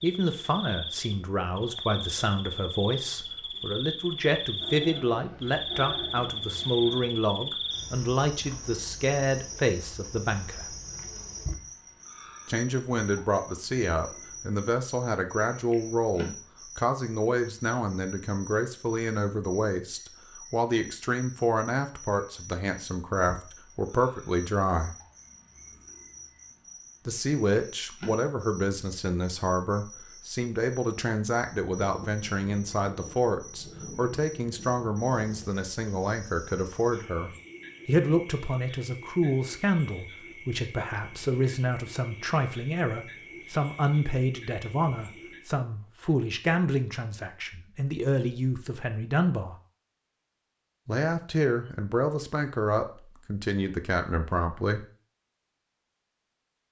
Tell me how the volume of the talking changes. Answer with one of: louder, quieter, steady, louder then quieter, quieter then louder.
steady.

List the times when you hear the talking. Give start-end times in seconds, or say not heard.
0.0-10.8, 12.4-24.9, 27.1-49.5, 50.9-54.9.